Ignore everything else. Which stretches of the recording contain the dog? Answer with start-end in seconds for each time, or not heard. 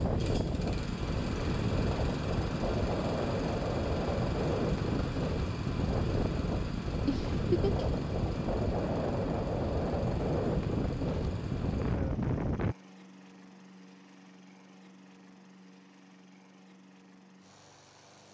not heard.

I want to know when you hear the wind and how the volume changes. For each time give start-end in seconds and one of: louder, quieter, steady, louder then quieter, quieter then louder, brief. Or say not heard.
0.0-12.8 steady.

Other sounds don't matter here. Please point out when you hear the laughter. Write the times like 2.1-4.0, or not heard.
7.0-8.0.